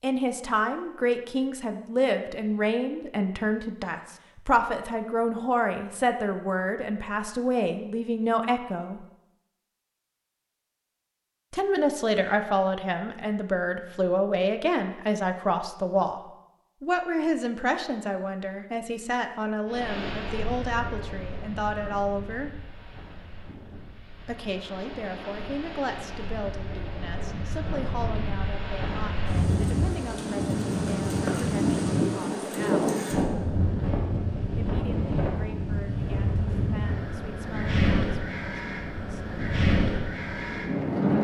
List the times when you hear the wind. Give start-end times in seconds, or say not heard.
19.6-41.1.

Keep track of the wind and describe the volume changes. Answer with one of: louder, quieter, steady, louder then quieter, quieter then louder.
louder.